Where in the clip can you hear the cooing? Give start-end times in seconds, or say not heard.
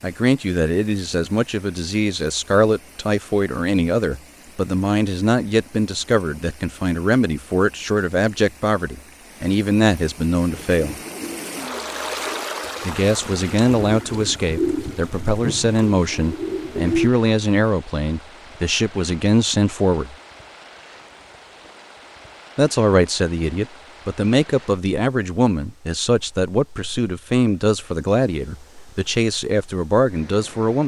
10.5-17.1.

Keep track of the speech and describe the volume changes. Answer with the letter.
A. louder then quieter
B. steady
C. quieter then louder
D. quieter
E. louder
B.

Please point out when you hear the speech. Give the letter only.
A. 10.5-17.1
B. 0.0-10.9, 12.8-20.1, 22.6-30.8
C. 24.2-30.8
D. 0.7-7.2
B.